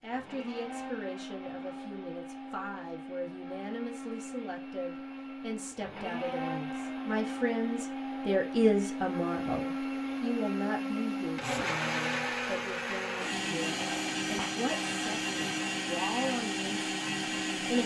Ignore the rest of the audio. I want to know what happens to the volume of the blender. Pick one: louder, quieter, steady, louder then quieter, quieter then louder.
louder.